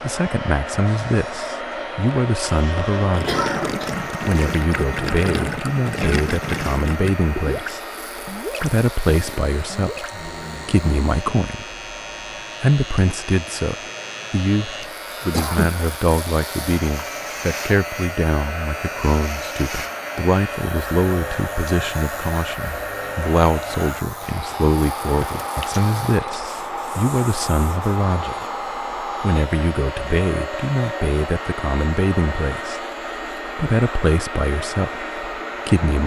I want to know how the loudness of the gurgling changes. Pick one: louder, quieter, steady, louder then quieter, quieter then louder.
quieter.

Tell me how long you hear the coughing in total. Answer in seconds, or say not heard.
2 s.